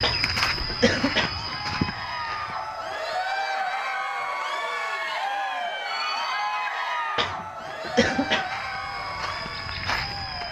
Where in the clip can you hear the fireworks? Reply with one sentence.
The fireworks can't be heard in this clip.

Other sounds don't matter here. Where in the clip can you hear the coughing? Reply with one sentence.
You can hear the coughing from 0.0 to 1.9 s and from 7.2 to 8.5 s.